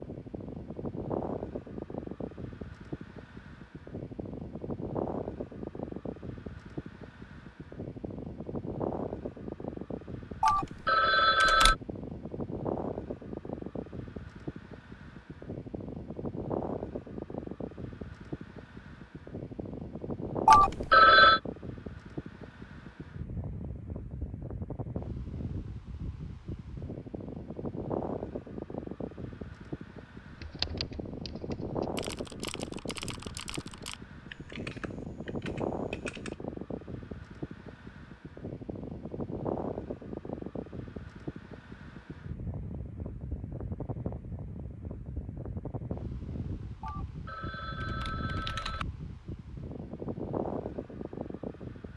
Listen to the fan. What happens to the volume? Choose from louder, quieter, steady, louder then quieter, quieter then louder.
steady.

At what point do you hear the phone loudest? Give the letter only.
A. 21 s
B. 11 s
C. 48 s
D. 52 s
A.